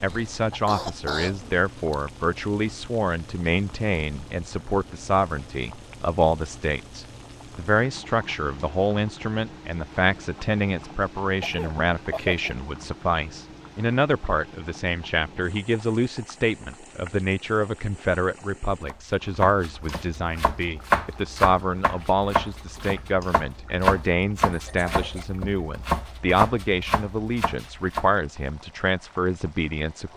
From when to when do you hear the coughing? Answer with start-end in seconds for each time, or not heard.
0.1-1.9, 11.4-12.6, 24.5-25.2.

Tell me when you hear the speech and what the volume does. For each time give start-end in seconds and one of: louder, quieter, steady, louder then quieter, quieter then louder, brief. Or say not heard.
0.0-30.1 steady.